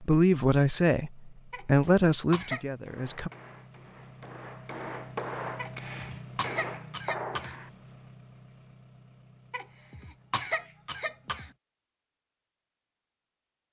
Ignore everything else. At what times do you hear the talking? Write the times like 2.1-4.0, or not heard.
0.0-3.3.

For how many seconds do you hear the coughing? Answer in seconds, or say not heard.
5 s.